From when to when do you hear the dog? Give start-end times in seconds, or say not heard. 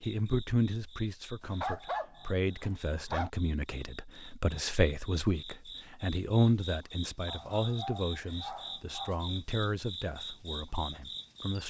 1.4-3.3, 7.2-9.2.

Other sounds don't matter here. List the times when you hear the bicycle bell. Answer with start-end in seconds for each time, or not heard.
not heard.